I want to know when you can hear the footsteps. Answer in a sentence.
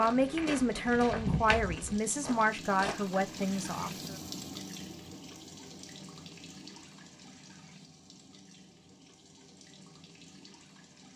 You can hear the footsteps from 0.0 to 3.0 s.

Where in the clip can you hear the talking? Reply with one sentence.
The talking can be heard from 0.0 to 4.2 s.